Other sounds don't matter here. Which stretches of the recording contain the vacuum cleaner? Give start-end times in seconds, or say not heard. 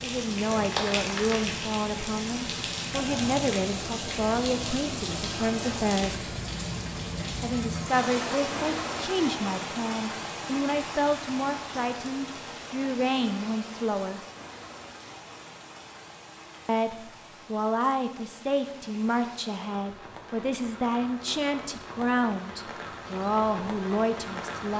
not heard.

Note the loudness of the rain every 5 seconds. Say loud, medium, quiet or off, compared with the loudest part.
loud, loud, medium, quiet, medium.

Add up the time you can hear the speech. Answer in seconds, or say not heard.
21 s.